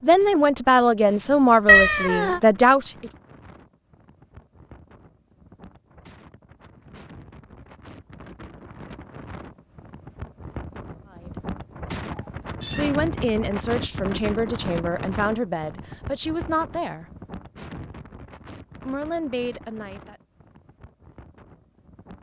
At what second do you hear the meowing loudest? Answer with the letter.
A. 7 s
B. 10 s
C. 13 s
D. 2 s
D.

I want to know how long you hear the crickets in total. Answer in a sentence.
You can't hear the crickets here.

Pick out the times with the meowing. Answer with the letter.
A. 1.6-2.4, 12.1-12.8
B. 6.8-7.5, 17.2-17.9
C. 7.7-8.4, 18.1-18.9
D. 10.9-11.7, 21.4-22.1
A.